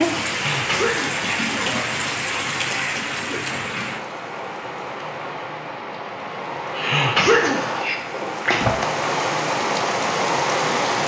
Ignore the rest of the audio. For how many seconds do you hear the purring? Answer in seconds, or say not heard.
not heard.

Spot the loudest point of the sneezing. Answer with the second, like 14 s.
7 s.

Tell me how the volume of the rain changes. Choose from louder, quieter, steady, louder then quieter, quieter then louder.
quieter then louder.